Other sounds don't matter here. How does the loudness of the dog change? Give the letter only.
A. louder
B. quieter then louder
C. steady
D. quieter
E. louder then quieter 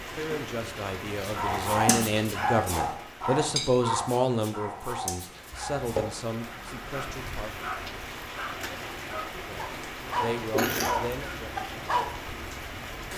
B.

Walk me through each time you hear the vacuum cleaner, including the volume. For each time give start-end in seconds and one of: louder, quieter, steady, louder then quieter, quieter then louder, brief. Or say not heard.
not heard.